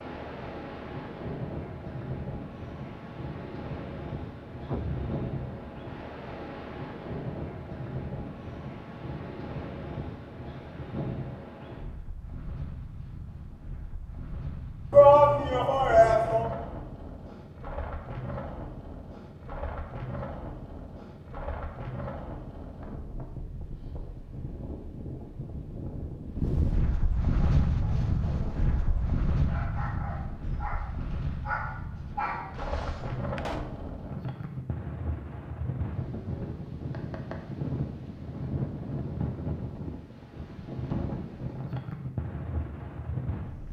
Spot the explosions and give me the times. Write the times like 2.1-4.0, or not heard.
4.7-5.8, 33.4-33.9.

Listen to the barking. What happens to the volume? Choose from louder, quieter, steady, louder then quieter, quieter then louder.
louder.